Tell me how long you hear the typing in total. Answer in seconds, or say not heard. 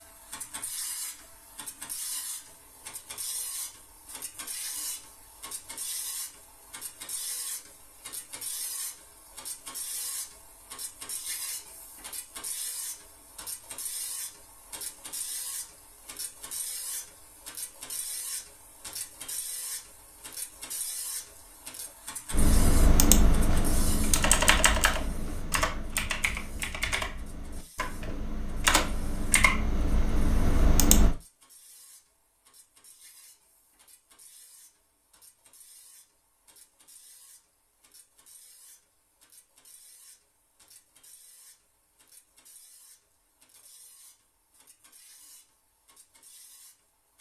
9 s.